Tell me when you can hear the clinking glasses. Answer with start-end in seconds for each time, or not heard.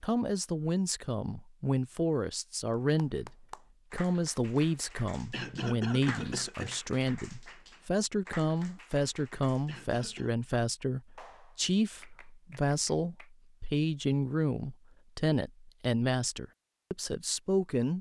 not heard.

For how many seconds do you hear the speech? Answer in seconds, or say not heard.
18 s.